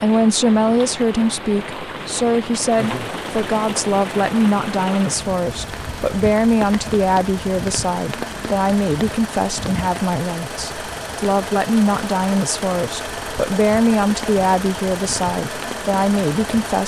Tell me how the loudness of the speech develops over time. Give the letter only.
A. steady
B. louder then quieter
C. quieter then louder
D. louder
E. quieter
A.